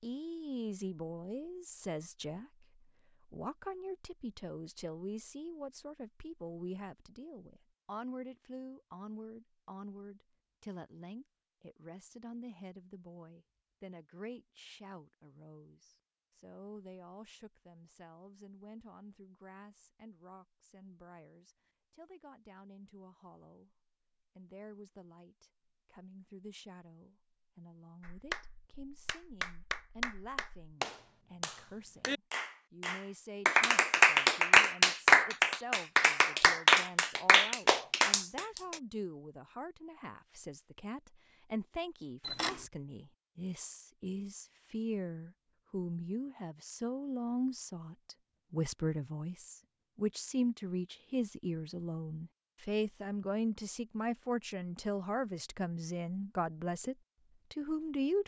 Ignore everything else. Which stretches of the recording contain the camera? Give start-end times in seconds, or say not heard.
42.2-42.6.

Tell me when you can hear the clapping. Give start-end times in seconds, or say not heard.
28.0-38.8.